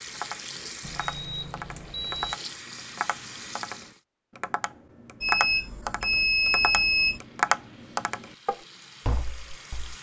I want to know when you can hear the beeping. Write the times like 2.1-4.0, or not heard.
0.8-2.4, 5.2-7.2.